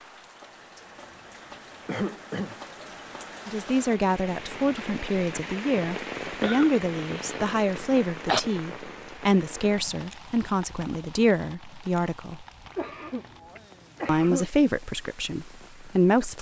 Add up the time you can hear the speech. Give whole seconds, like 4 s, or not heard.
11 s.